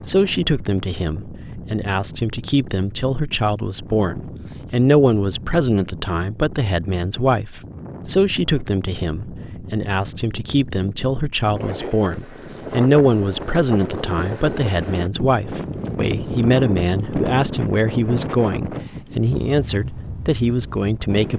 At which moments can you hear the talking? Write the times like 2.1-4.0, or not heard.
0.1-21.3.